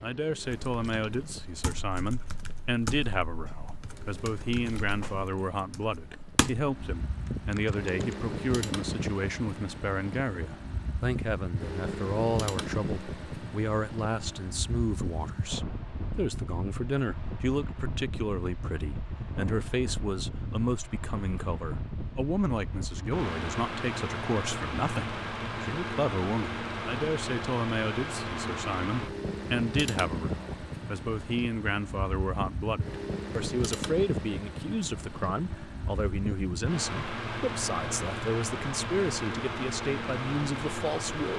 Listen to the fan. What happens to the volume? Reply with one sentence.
The loudness of the fan goes up.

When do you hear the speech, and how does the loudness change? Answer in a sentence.
You can hear the speech from 0.0 to 41.3 s, at a steady volume.